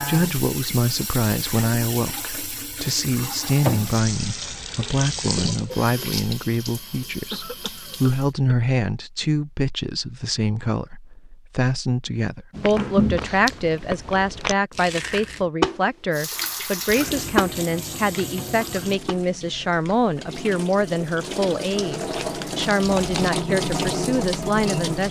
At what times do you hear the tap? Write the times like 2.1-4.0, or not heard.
0.0-8.3, 16.1-25.0.